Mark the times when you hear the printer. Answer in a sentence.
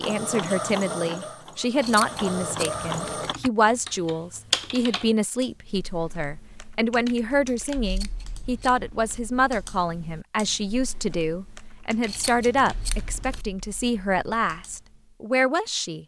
The printer can be heard from 0.0 to 3.4 s.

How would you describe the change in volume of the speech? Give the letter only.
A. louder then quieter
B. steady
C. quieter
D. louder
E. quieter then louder
B.